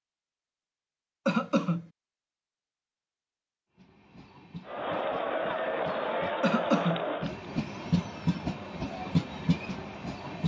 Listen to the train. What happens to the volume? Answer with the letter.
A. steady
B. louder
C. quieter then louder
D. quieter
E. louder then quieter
B.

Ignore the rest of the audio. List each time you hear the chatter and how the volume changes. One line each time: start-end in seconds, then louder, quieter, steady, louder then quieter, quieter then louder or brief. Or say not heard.
4.7-10.4 quieter.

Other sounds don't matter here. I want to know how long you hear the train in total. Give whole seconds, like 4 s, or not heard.
7 s.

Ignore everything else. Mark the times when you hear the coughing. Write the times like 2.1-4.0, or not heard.
1.2-1.9, 6.4-7.0.